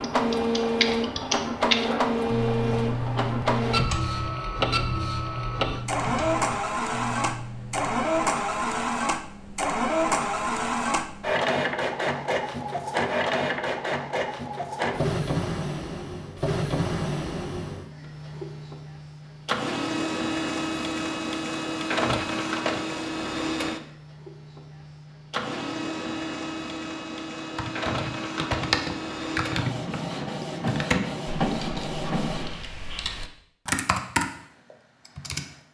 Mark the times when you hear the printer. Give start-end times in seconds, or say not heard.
0.0-32.6.